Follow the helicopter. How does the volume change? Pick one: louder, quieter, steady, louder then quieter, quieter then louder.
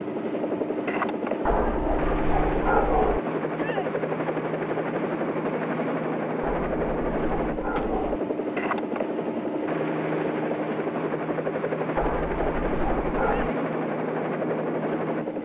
steady.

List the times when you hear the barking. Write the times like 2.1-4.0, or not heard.
1.4-3.2, 6.4-8.2, 11.9-13.5.